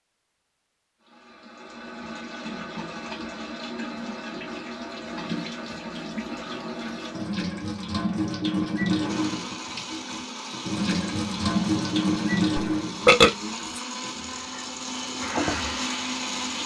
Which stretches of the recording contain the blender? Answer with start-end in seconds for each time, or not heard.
9.1-16.6.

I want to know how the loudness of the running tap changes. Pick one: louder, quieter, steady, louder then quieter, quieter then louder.
louder then quieter.